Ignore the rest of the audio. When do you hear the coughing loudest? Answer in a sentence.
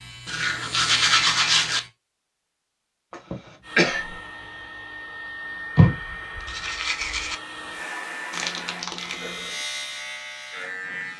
The volume of the coughing peaks at 4 seconds.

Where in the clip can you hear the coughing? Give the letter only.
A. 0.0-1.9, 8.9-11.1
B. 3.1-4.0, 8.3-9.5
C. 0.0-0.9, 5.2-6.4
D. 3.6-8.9
B.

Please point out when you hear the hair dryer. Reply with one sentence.
You can hear the hair dryer from 3.6 to 8.9 s.